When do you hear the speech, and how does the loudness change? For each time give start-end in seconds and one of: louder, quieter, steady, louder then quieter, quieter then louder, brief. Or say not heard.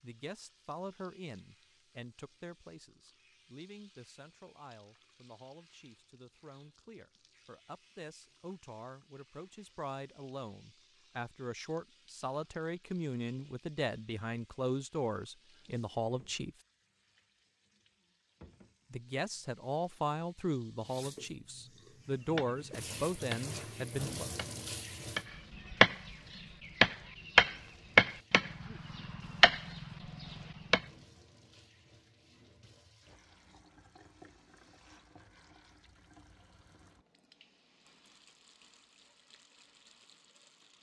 0.0-16.6 quieter then louder
18.9-24.3 quieter then louder.